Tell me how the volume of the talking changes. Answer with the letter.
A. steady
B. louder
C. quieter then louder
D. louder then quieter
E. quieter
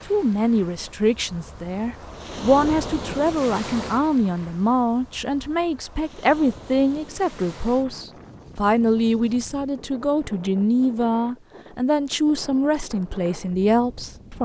A.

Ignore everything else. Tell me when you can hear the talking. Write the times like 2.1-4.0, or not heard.
0.1-14.4.